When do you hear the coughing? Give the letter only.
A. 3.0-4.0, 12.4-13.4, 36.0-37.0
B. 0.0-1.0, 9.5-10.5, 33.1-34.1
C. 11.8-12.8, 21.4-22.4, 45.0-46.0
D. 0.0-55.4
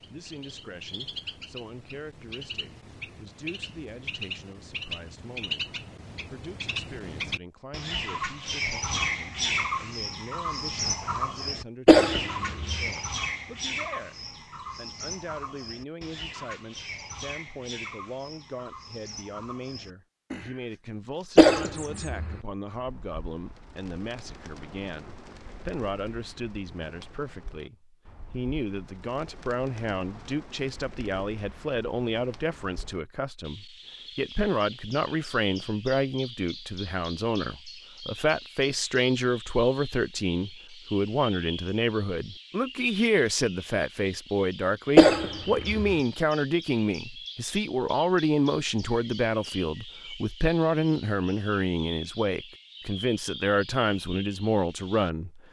C.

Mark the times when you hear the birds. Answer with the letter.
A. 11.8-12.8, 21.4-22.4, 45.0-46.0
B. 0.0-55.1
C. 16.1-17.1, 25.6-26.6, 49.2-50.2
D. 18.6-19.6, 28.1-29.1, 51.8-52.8
B.